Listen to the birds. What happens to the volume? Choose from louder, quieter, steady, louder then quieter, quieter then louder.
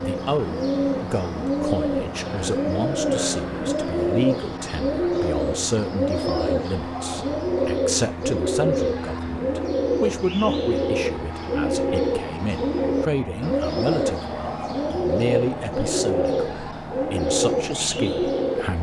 steady.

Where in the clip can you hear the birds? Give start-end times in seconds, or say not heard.
0.0-18.7.